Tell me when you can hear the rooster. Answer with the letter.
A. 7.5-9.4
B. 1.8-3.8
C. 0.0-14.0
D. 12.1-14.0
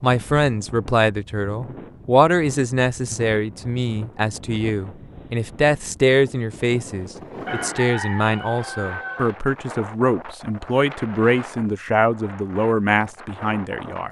A.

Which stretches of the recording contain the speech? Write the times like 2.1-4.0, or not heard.
0.0-14.0.